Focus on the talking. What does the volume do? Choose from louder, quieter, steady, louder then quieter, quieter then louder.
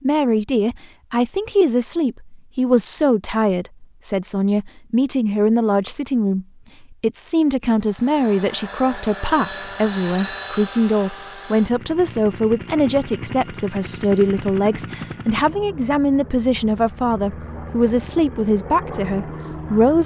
steady.